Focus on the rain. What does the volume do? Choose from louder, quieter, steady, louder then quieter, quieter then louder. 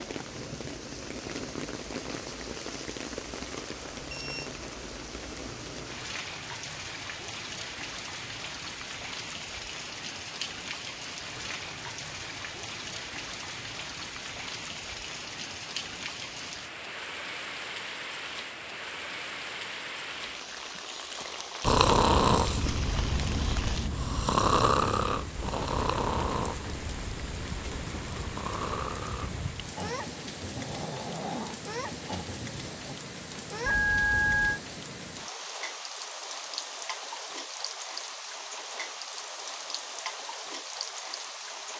steady.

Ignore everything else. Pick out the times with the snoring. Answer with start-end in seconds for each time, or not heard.
21.6-33.0.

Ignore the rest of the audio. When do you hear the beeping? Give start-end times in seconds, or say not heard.
4.0-4.5, 33.6-34.6.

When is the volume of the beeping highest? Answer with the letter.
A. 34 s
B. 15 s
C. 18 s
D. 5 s
A.